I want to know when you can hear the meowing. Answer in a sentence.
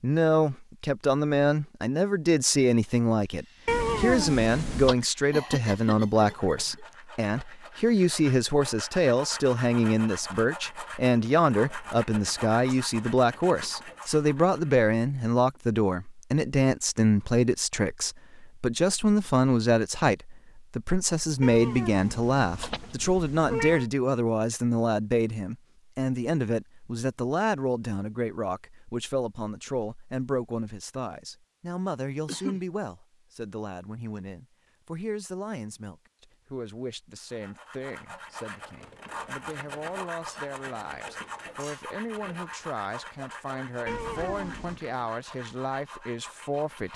The meowing can be heard from 3.6 to 5.0 s, from 21.4 to 23.9 s and from 43.9 to 44.8 s.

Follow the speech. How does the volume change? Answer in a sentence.
The loudness of the speech goes down.